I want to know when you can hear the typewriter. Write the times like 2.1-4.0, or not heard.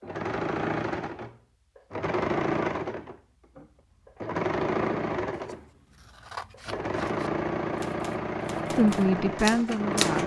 7.7-10.2.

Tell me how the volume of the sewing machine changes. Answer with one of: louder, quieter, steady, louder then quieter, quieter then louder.
steady.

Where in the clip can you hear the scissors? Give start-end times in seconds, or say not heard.
5.3-7.3.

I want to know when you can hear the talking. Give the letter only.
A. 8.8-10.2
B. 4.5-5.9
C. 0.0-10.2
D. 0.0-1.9
A.